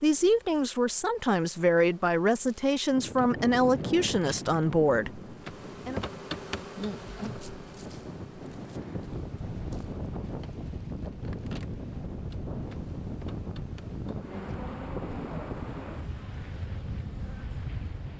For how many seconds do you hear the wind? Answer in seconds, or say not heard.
15 s.